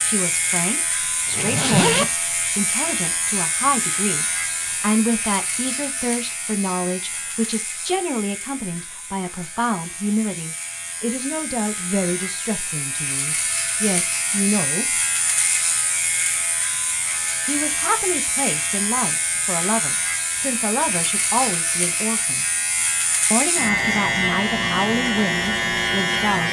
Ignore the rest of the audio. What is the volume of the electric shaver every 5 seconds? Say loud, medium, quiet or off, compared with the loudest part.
medium, quiet, medium, medium, loud, loud.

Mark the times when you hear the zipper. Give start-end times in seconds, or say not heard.
1.2-2.1.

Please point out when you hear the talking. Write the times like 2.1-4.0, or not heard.
0.0-15.0, 17.4-22.4, 23.3-26.4.